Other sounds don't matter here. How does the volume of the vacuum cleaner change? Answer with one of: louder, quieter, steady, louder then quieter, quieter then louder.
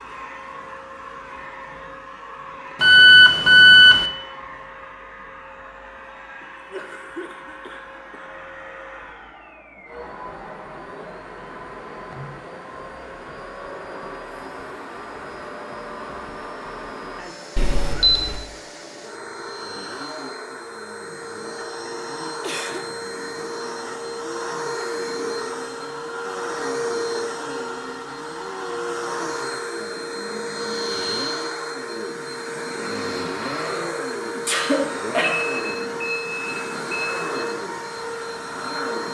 louder.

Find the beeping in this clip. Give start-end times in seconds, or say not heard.
2.8-4.0, 17.6-18.4, 35.4-37.2.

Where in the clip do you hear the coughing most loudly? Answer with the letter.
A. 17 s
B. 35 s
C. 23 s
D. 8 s
B.